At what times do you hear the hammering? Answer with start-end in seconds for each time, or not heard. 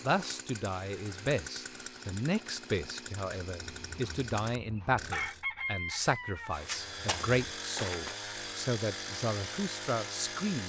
6.0-8.2.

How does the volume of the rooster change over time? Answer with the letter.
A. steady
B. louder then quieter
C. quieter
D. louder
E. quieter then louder
B.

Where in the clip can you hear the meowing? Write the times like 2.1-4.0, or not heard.
not heard.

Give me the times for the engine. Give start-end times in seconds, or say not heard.
0.0-5.5, 6.5-10.6.